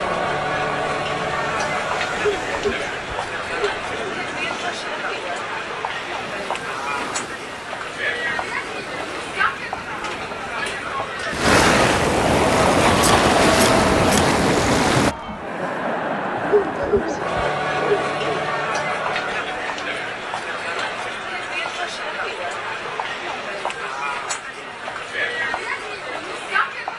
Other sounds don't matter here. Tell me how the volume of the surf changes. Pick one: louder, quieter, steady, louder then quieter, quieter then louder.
louder.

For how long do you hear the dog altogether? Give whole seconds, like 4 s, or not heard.
4 s.